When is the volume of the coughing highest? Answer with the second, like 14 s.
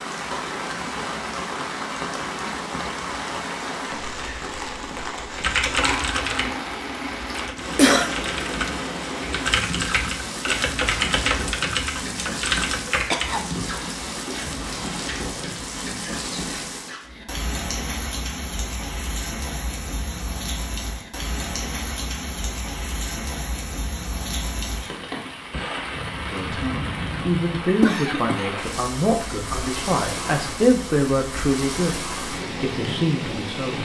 8 s.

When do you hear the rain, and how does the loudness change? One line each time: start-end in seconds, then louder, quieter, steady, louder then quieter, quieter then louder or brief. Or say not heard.
0.0-33.7 steady.